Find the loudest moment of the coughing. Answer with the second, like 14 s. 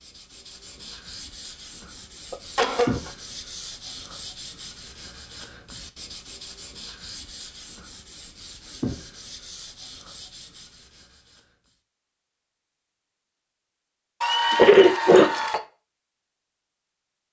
15 s.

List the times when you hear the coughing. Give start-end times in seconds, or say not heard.
2.3-3.1, 14.2-15.6.